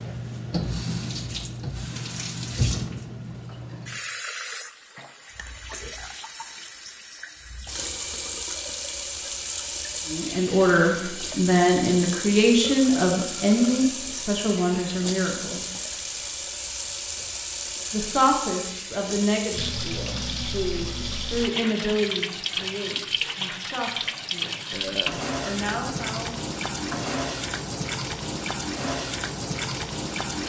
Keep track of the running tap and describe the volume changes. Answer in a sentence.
The loudness of the running tap stays about the same.